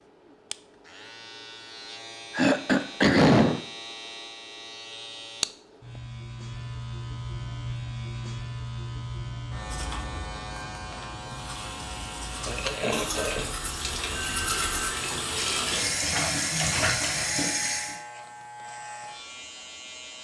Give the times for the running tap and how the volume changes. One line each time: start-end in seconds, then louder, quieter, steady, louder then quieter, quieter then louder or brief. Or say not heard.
11.3-18.0 louder.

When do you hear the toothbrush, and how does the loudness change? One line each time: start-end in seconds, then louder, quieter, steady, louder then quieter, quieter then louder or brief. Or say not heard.
9.7-14.9 louder.